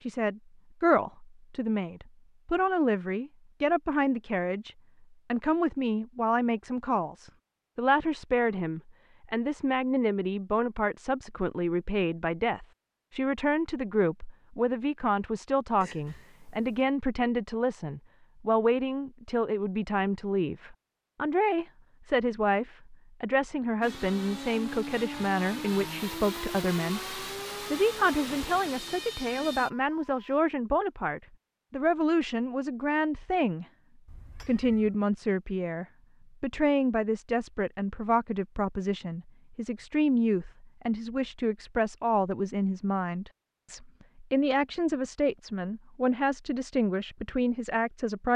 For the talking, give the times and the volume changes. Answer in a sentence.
You can hear the talking from 0.1 to 4.7 s, getting quieter then louder; from 5.3 to 33.6 s, at a steady volume; and from 34.5 to 48.3 s, at a steady volume.